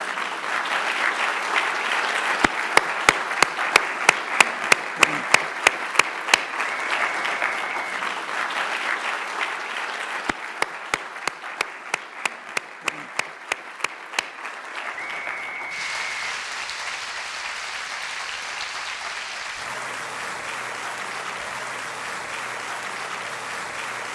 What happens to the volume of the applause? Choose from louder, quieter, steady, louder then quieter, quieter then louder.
quieter.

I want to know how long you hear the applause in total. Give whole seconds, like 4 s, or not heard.
24 s.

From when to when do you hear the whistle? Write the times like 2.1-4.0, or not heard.
6.6-8.1, 14.9-16.4.